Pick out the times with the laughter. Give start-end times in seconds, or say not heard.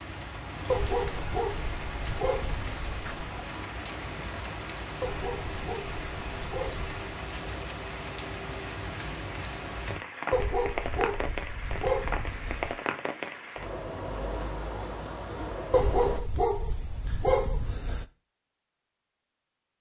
not heard.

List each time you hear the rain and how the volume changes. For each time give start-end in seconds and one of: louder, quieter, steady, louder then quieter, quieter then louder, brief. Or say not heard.
0.0-16.2 steady.